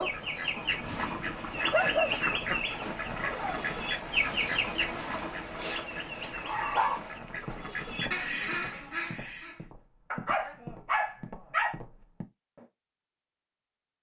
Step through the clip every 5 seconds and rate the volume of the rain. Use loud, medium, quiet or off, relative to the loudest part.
loud, loud, off.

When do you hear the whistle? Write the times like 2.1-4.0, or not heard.
not heard.